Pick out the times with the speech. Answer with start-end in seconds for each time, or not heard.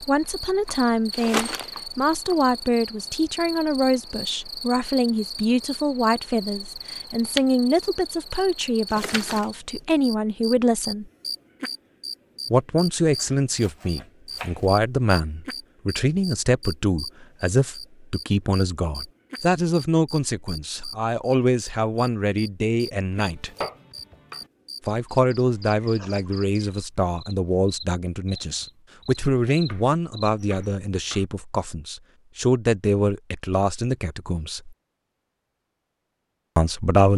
0.0-11.1, 12.5-23.5, 24.9-34.8, 36.5-37.1.